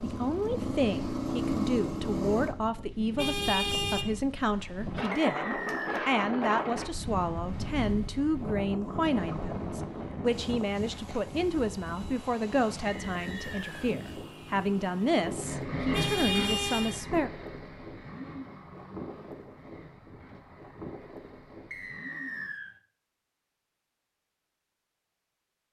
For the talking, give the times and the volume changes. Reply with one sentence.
The talking can be heard from 0.0 to 17.3 s, at a steady volume.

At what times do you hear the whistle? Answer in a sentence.
The whistle can be heard from 5.1 to 6.1 s, from 12.8 to 13.9 s and from 21.7 to 22.7 s.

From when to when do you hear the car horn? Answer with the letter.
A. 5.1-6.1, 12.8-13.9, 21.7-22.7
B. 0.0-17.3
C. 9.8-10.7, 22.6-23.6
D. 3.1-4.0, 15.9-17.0
D.